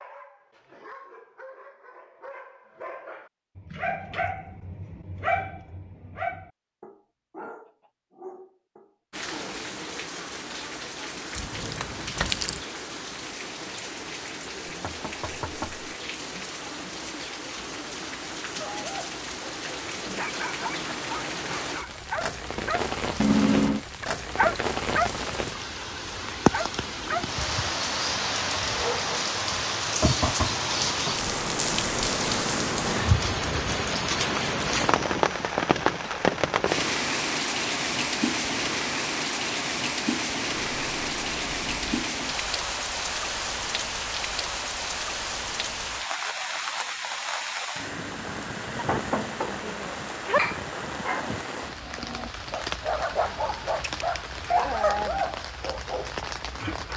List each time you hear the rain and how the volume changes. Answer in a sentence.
You can hear the rain from 9.1 to 56.9 s, getting louder then quieter.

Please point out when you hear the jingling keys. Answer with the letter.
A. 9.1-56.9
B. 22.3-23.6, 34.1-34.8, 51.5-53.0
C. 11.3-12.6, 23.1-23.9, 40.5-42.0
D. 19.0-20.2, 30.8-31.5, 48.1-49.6
C.